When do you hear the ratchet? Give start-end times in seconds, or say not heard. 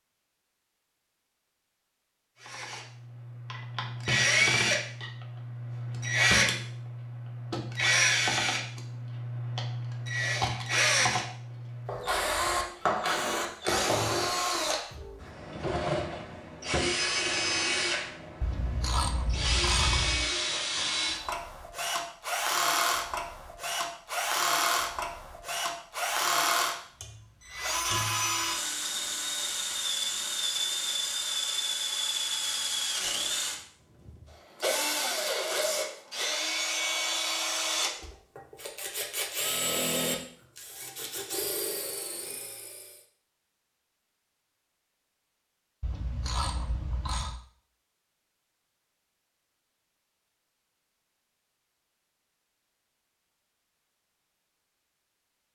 18.4-20.2, 45.8-47.4.